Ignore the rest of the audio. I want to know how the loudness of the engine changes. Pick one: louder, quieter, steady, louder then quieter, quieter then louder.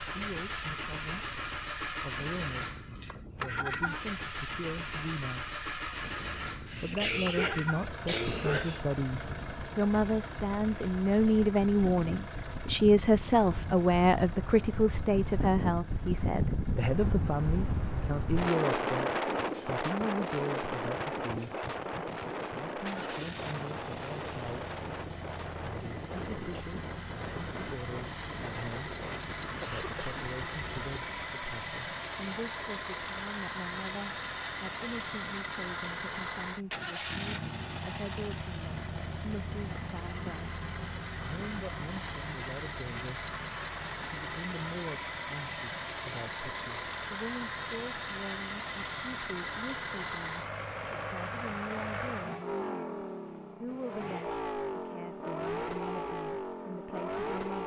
quieter then louder.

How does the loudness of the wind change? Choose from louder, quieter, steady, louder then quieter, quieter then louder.
louder then quieter.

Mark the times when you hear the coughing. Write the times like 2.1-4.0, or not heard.
6.7-8.8, 29.6-30.1.